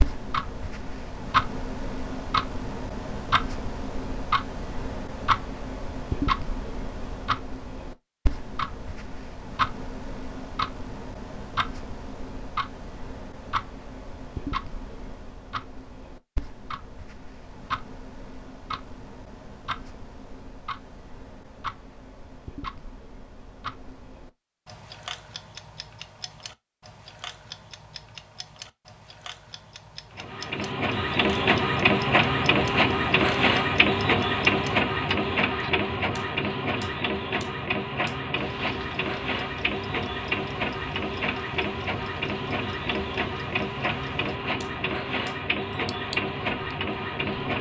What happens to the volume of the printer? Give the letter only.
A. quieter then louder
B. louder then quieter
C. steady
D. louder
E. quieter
E.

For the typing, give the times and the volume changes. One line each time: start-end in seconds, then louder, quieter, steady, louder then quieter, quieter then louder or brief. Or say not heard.
not heard.